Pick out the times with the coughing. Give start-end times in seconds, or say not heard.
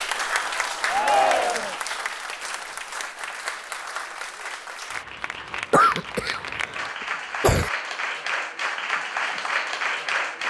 5.7-7.7.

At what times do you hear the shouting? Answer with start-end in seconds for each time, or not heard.
0.8-1.8.